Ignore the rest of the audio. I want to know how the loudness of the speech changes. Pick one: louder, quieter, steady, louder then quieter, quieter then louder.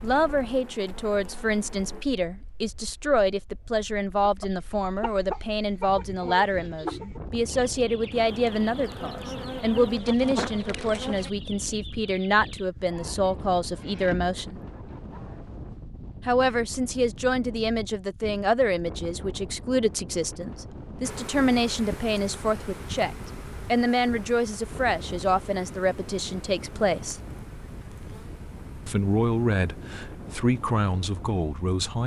steady.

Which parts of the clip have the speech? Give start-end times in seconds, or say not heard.
0.0-14.6, 16.2-27.2, 28.9-32.0.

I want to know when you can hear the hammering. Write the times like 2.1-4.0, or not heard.
not heard.